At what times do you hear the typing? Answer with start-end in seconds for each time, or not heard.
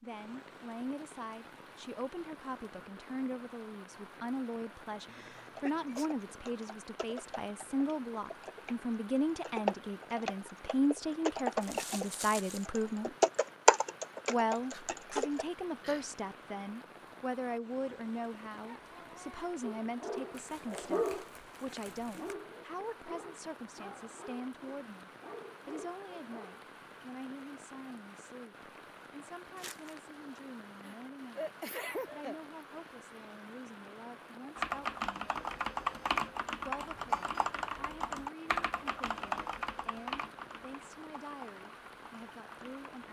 5.3-15.4, 34.5-42.9.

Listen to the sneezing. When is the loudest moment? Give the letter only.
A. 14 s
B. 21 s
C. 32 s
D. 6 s
C.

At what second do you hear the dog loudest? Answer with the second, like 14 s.
21 s.